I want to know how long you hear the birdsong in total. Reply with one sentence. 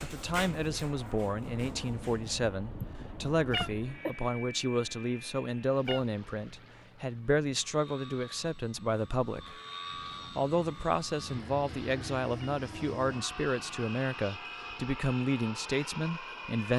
You can't hear the birdsong here.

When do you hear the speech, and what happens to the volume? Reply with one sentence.
The speech can be heard from 0.0 to 9.6 s, at a steady volume; and from 10.3 to 16.7 s, at a steady volume.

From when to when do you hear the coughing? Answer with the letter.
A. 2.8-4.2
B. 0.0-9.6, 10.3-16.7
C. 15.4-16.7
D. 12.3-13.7
A.